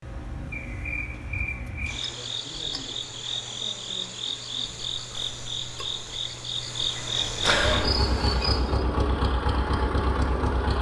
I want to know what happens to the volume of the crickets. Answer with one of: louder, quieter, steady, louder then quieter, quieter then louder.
louder.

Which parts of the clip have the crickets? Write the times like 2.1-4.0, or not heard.
0.0-8.8.